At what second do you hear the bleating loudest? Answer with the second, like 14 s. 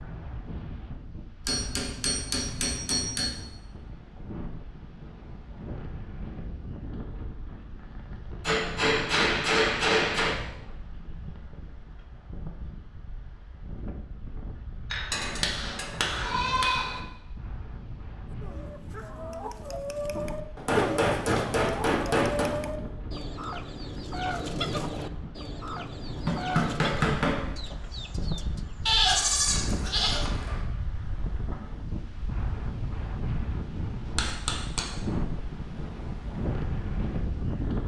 29 s.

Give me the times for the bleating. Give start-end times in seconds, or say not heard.
15.1-17.0, 28.9-30.6.